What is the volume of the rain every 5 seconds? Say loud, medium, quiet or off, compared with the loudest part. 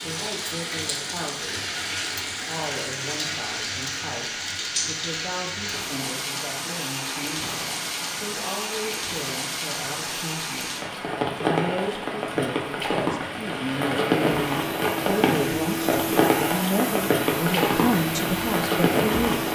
medium, medium, loud, loud.